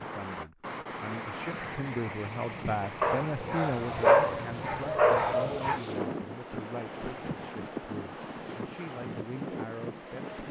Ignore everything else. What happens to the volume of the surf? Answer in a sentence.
The loudness of the surf stays about the same.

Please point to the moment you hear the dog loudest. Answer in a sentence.
The volume of the dog peaks at 4 seconds.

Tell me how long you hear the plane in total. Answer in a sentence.
You can't hear the plane here.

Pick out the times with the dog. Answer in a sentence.
The dog can be heard from 3.0 to 5.8 s.